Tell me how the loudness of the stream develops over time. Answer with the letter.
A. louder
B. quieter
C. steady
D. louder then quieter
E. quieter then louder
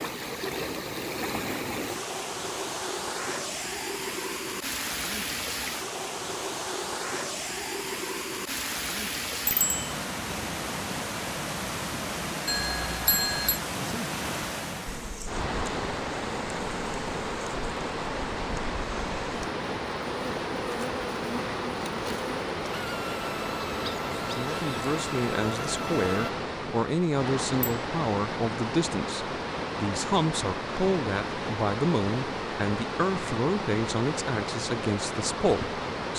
C.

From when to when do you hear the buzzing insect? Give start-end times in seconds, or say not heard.
14.8-26.3.